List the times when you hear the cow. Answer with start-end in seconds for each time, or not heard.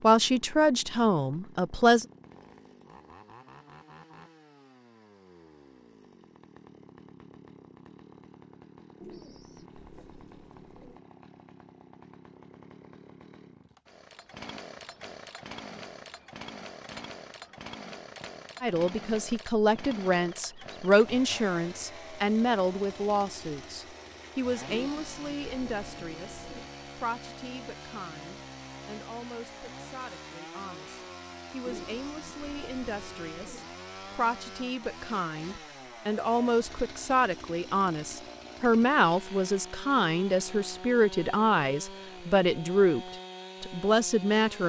not heard.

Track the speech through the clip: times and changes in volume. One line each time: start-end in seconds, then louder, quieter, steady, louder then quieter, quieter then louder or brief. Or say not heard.
0.0-2.0 brief
18.6-44.6 quieter then louder.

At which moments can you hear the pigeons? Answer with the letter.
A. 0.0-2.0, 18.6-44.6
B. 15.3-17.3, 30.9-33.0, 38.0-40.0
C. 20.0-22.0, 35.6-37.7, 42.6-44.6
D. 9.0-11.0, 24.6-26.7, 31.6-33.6
D.